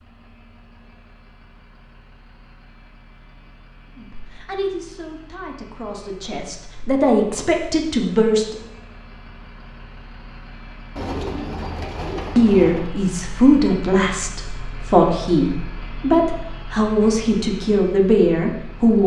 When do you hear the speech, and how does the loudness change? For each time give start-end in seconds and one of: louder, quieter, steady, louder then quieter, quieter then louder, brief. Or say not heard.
4.0-8.6 quieter then louder
12.3-19.0 steady.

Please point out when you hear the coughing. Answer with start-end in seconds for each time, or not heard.
not heard.